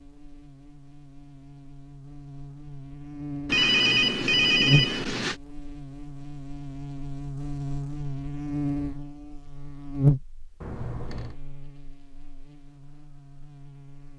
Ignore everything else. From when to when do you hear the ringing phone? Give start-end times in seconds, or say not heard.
3.5-5.3, 10.6-11.4.